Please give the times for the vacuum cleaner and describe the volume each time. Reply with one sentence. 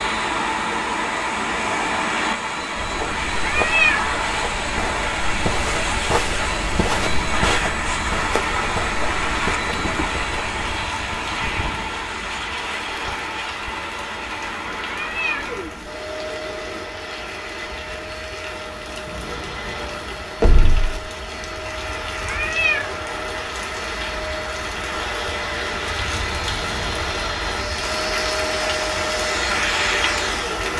You can hear the vacuum cleaner from 0.0 to 30.7 s, getting quieter then louder.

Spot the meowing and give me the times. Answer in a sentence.
The meowing can be heard from 3.4 to 4.1 s, from 14.9 to 15.6 s and from 22.2 to 22.9 s.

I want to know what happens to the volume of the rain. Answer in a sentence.
The volume of the rain goes up.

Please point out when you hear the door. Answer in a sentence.
You can hear the door from 20.4 to 20.9 s.